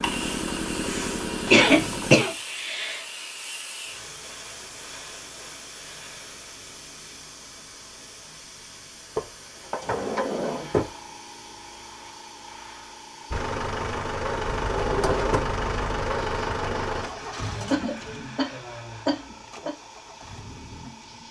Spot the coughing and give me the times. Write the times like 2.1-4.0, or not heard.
0.8-3.0, 17.2-19.7.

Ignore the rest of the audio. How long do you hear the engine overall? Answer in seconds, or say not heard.
10 s.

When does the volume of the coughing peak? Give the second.
2 s.